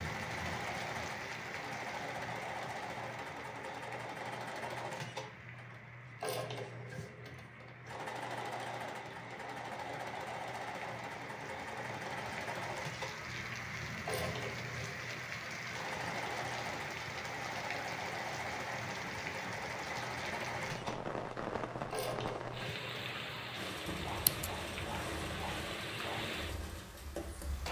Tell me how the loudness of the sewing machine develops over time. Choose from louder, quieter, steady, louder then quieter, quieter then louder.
steady.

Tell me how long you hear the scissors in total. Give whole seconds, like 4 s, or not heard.
2 s.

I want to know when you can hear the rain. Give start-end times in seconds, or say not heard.
0.0-27.6.